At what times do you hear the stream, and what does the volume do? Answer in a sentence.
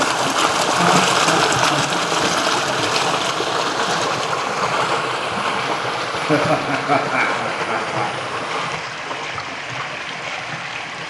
You can hear the stream from 0.0 to 11.0 s, getting quieter.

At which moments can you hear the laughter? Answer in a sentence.
The laughter can be heard from 0.7 to 1.9 s and from 6.2 to 8.3 s.